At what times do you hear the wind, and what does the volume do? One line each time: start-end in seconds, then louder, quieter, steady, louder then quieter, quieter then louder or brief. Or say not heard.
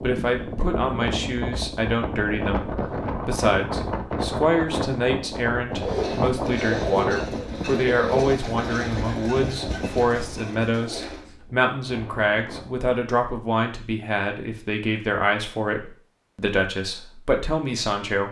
0.0-12.9 quieter.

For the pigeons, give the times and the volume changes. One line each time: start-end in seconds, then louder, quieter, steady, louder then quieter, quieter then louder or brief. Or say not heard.
5.7-11.3 quieter.